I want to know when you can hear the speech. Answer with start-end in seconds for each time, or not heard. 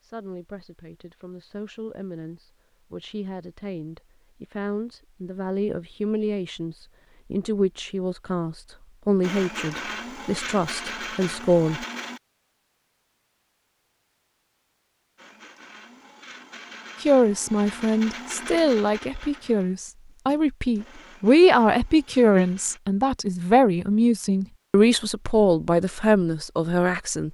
0.0-11.8, 17.0-27.2.